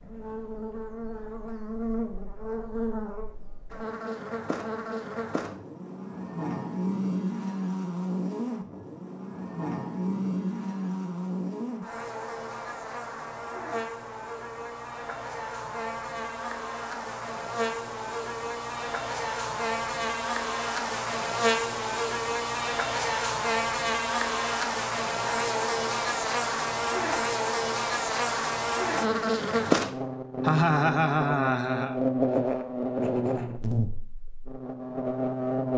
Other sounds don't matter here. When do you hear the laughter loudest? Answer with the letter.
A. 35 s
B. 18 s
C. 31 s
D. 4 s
C.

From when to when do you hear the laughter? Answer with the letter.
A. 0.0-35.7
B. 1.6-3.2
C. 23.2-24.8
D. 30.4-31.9
D.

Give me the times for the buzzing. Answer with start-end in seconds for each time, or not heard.
0.0-35.7.